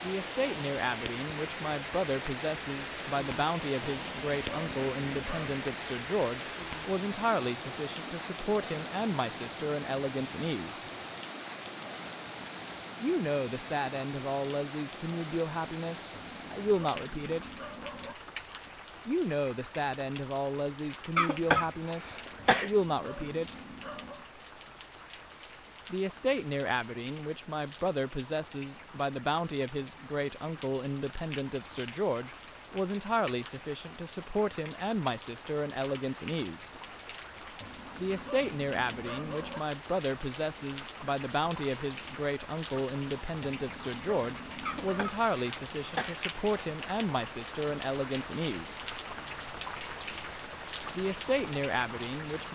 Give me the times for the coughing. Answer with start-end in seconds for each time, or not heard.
21.1-22.7, 44.6-46.2.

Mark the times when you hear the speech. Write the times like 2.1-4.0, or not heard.
0.0-10.8, 13.0-17.5, 19.1-23.6, 25.9-36.7, 38.0-48.9, 50.9-52.4.